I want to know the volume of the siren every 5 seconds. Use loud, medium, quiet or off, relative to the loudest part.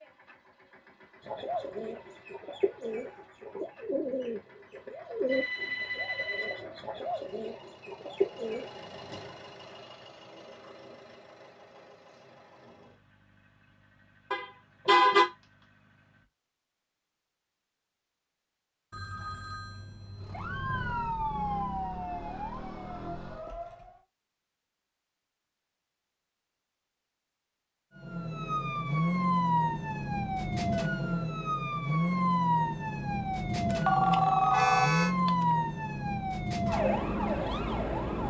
off, off, off, off, medium, loud, loud, loud.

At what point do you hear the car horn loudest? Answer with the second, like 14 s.
15 s.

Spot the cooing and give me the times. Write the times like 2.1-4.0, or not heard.
1.2-8.8.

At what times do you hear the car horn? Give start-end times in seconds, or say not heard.
14.3-15.2, 34.5-35.1.